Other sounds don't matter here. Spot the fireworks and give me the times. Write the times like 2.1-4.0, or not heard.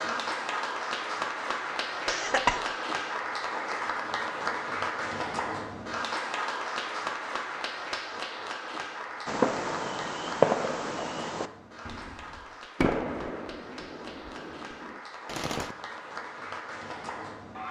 9.2-15.8.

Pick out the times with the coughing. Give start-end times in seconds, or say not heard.
2.0-2.6.